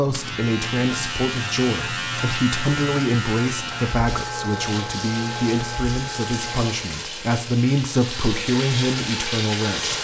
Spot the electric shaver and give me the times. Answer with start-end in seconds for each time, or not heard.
0.0-6.8.